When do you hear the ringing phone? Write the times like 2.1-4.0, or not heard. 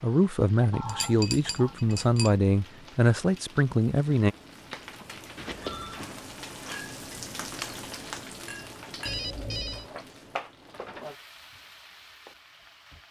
0.7-1.8, 5.3-6.0, 9.1-9.8.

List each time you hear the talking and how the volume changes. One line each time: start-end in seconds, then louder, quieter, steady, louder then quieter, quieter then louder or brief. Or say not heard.
0.0-4.3 steady.